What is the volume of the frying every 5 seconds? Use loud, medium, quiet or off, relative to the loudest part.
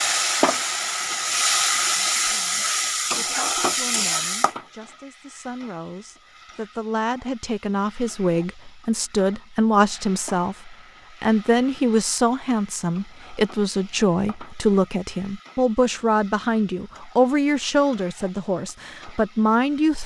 loud, quiet, quiet, quiet.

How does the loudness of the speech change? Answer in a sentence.
The volume of the speech goes up.